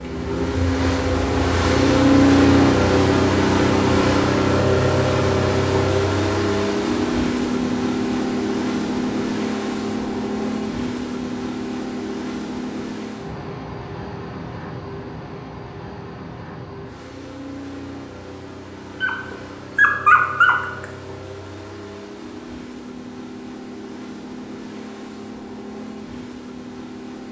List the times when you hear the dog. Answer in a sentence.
The dog can be heard from 19.0 to 20.9 s.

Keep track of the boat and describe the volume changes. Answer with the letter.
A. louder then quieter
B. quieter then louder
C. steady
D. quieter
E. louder
D.